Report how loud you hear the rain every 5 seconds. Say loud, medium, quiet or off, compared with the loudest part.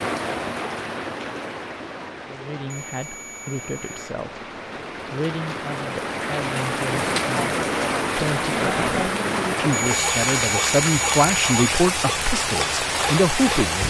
medium, loud, loud.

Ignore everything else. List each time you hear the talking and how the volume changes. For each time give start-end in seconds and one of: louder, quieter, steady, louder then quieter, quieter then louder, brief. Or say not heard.
2.2-4.5 brief
5.1-13.8 louder.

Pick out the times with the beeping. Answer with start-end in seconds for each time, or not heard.
2.7-4.1, 9.7-11.7.